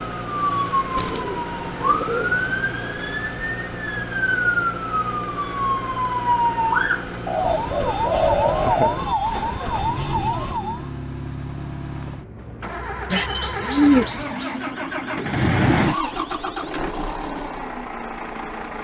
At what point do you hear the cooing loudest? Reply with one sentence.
The loudest moment of the cooing is at 14 seconds.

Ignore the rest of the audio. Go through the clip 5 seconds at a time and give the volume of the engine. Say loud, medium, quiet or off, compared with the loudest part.
medium, medium, medium, loud.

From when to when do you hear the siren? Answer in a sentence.
The siren can be heard from 0.0 to 10.9 s.